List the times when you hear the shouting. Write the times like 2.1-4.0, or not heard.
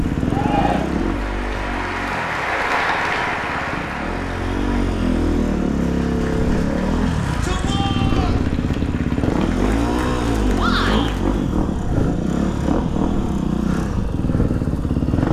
0.2-0.9, 7.0-8.4, 10.6-11.2.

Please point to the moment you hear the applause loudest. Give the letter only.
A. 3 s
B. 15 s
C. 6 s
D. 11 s
A.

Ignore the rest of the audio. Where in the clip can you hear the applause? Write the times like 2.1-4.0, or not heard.
0.0-11.4.